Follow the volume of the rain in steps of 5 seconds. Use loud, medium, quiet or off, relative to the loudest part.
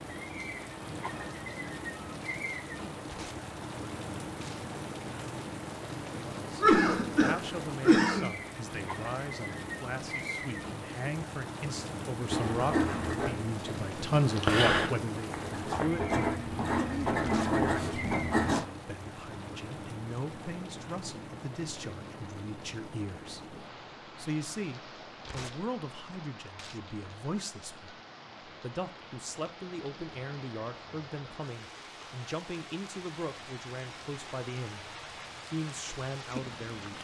loud, loud, loud, loud, medium, medium, medium, loud.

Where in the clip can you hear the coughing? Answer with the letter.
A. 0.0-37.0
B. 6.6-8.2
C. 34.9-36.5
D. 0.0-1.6
B.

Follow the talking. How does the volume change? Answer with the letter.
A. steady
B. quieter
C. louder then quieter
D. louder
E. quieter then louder
C.